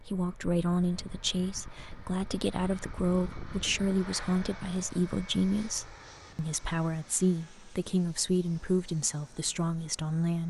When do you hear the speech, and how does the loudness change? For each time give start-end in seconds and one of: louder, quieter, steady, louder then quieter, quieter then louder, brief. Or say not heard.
0.0-10.4 steady.